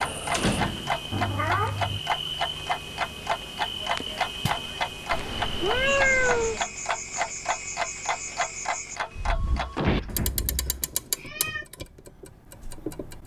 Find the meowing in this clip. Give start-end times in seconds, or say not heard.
1.1-2.0, 5.1-6.6, 9.5-11.7.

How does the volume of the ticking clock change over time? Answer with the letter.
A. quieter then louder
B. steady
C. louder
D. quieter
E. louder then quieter
D.